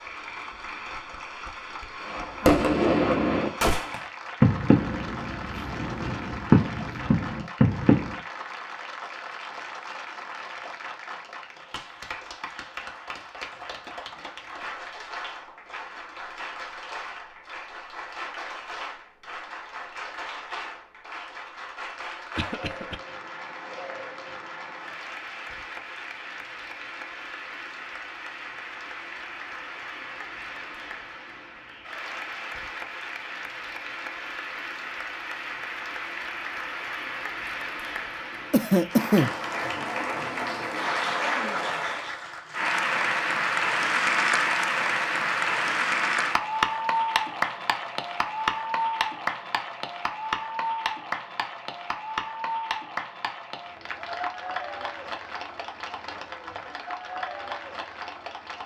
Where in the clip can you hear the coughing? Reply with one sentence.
You can hear the coughing from 22.4 to 23.0 s and from 38.5 to 39.4 s.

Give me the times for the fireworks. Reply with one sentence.
The fireworks can be heard from 2.1 to 8.2 s.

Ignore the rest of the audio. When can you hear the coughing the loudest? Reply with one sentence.
The loudest moment of the coughing is at 39 seconds.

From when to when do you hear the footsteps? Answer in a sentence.
You can't hear the footsteps here.